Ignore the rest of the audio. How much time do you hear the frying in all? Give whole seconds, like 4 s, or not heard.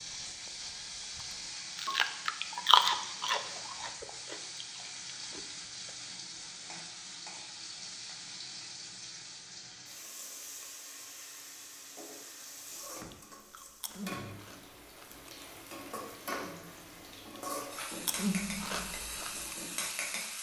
20 s.